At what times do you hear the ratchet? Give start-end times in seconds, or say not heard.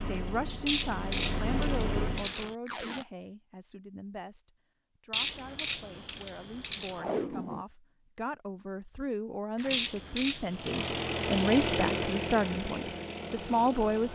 0.7-2.5, 5.1-7.0, 9.7-10.9.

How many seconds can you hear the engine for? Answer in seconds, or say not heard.
6 s.